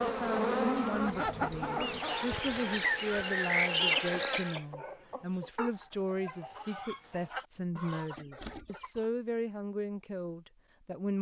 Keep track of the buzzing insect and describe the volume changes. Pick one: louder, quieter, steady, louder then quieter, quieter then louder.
quieter then louder.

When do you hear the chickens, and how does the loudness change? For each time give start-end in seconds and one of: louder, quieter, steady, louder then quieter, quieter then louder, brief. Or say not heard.
0.0-9.1 quieter.